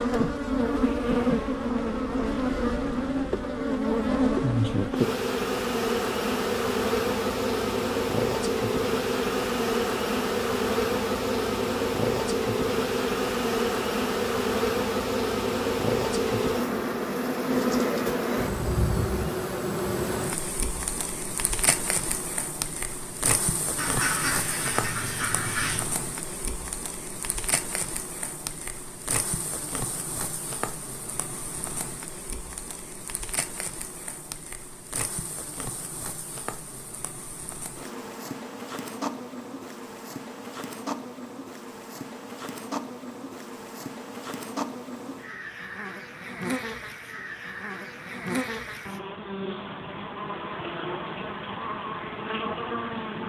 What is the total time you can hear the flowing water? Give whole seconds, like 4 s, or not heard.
not heard.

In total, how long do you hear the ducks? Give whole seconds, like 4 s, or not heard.
2 s.